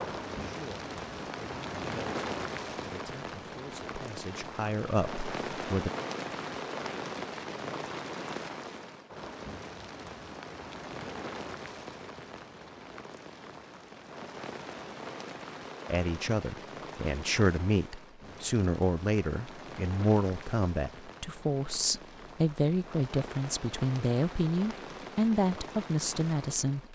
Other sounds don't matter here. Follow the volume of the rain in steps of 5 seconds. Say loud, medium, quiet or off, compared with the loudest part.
loud, loud, medium, medium, medium, medium.